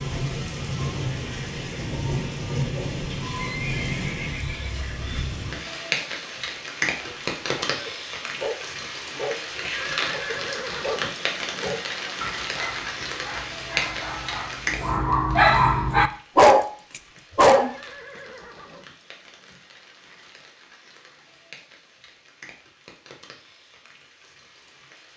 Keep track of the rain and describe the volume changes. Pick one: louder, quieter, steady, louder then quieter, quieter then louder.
quieter.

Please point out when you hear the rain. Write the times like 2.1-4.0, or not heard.
0.0-25.1.